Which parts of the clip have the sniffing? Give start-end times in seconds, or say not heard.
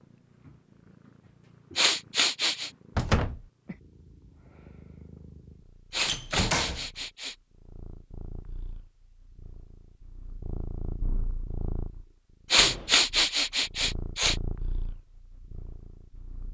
1.8-2.7, 5.9-7.3, 12.5-14.3.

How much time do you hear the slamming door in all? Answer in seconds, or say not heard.
2 s.